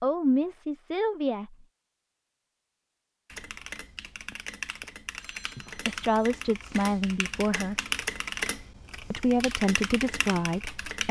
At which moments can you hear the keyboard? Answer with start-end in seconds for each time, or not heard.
3.2-11.0.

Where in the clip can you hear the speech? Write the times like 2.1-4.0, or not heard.
0.0-1.6, 5.8-7.8, 9.1-11.0.